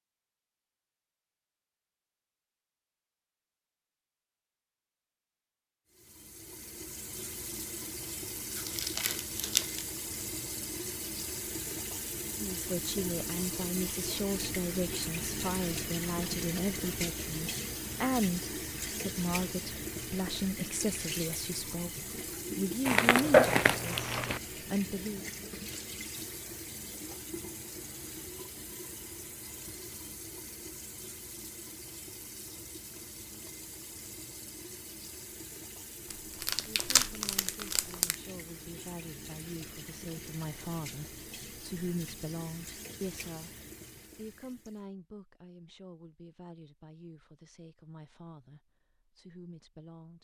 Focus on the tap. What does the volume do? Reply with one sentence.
The volume of the tap goes down.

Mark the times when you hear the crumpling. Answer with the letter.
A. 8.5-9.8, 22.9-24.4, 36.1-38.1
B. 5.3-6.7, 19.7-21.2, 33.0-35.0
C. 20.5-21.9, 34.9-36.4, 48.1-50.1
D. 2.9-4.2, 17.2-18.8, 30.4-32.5
A.